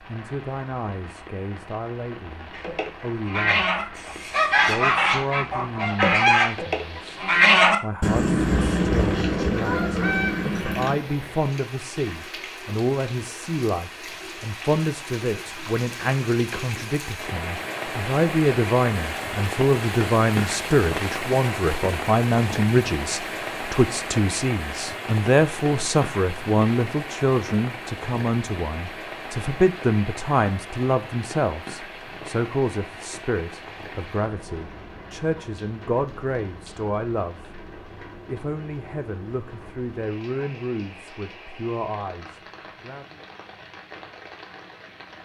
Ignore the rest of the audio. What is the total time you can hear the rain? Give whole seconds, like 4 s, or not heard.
45 s.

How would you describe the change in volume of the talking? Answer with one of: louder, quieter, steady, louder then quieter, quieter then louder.
louder then quieter.